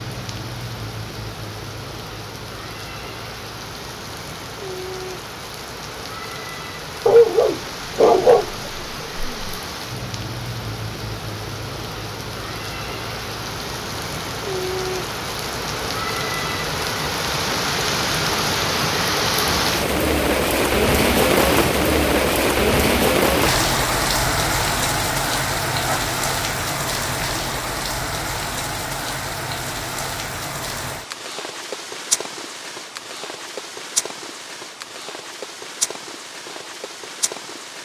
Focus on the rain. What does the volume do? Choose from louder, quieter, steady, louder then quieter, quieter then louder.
louder then quieter.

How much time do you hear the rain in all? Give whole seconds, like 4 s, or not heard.
38 s.